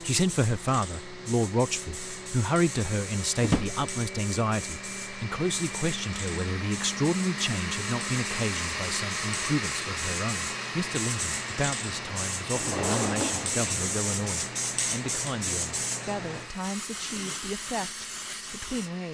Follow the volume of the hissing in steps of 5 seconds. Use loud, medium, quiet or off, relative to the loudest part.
medium, medium, loud, loud.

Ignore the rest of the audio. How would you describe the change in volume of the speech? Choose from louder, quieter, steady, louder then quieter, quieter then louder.
quieter.